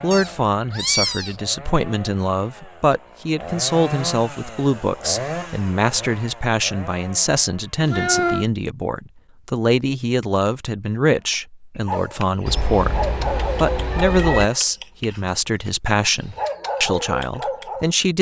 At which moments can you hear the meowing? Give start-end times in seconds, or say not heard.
0.1-1.4, 7.8-8.4, 12.4-14.4.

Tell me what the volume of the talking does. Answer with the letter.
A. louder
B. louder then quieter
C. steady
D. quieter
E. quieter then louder
C.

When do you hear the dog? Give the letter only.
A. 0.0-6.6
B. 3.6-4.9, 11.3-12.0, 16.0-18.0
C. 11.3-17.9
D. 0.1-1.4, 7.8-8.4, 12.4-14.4
C.